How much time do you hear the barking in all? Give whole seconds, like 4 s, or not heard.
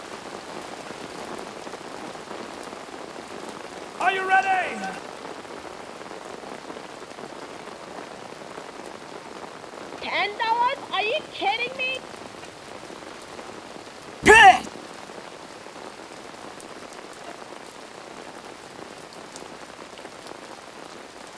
not heard.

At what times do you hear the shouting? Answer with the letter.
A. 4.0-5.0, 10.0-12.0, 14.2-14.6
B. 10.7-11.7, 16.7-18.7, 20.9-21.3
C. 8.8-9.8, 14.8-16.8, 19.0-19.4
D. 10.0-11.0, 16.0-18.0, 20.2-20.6
A.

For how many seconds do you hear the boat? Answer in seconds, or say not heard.
not heard.